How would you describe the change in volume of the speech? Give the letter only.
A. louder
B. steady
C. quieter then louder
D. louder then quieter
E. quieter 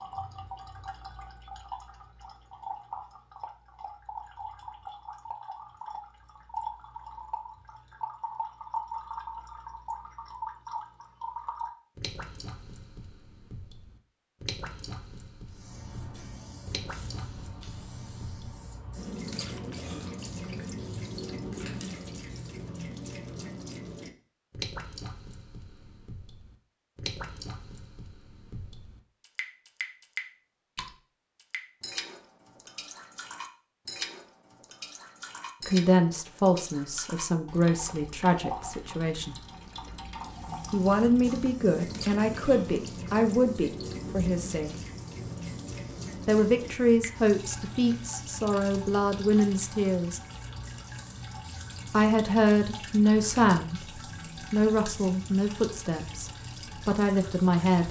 B.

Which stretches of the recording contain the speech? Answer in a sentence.
The speech can be heard from 35.6 to 39.4 s, from 40.7 to 44.7 s, from 46.2 to 50.2 s and from 51.9 to 57.8 s.